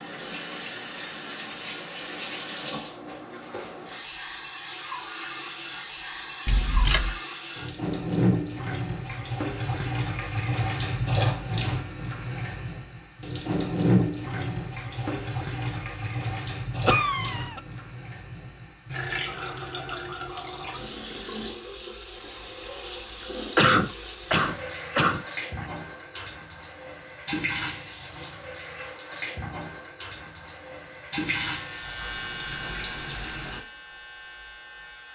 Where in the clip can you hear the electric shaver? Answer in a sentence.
The electric shaver can be heard from 31.2 to 35.1 s.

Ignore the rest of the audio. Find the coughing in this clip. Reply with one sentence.
You can hear the coughing from 6.5 to 7.2 s, from 16.9 to 17.6 s and from 23.6 to 25.6 s.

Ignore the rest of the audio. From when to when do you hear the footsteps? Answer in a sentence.
The footsteps can't be heard in this clip.